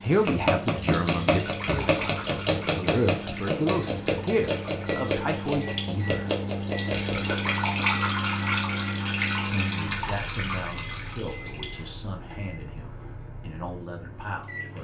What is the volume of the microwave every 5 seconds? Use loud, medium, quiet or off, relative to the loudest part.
medium, loud, medium.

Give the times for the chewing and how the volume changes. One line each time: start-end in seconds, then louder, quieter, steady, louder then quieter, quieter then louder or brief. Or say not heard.
not heard.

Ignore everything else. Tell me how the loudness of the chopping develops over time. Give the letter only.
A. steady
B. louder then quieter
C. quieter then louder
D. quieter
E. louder
D.